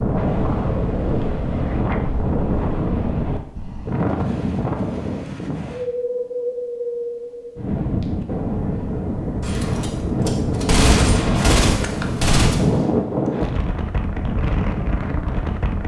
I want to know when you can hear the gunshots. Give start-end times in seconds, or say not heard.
9.4-12.8.